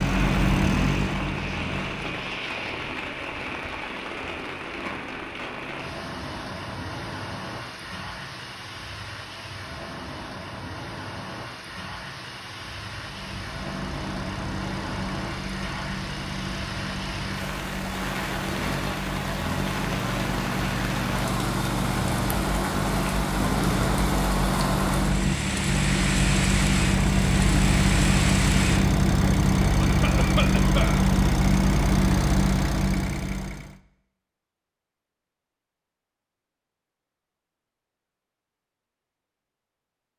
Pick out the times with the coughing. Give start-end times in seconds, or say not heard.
29.8-31.1.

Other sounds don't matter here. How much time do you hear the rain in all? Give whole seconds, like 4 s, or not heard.
29 s.